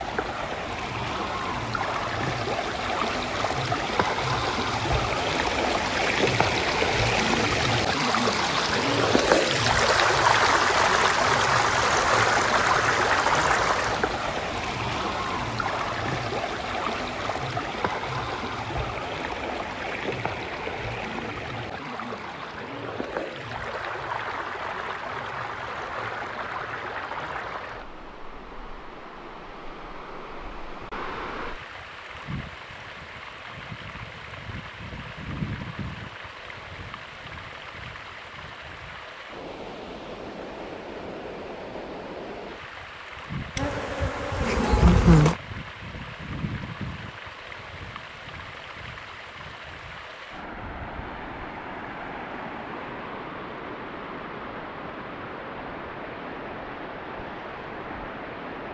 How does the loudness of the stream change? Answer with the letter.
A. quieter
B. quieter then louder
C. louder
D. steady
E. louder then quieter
A.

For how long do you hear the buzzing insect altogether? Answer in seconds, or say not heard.
2 s.